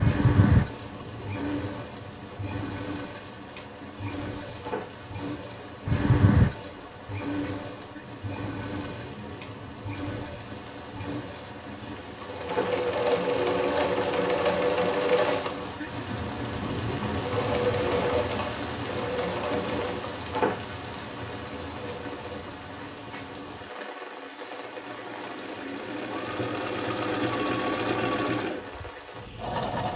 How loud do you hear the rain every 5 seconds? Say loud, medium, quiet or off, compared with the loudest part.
medium, medium, medium, loud, loud, medium.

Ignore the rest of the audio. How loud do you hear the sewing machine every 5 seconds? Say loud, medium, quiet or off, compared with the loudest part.
loud, loud, loud, loud, quiet, loud.